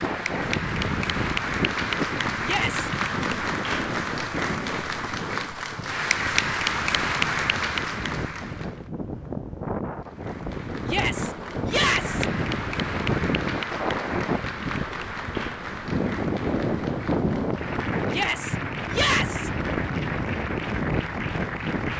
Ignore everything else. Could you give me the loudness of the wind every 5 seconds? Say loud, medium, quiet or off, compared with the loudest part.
loud, medium, loud, loud, loud.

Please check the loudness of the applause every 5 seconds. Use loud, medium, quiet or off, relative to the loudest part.
loud, loud, medium, medium, medium.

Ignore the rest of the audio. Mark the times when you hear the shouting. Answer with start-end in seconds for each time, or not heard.
2.4-2.9, 10.8-12.2, 18.1-19.5.